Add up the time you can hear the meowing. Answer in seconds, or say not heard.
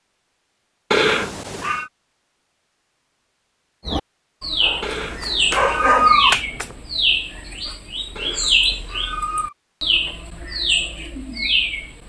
4 s.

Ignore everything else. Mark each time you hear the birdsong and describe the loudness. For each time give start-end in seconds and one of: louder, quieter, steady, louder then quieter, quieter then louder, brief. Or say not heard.
3.9-12.0 steady.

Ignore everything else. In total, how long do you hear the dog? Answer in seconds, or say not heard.
2 s.